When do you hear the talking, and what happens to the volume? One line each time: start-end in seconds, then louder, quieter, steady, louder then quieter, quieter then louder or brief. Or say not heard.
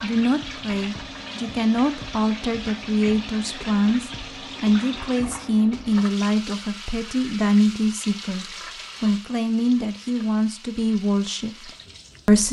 0.0-12.4 steady.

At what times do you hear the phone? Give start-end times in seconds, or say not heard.
not heard.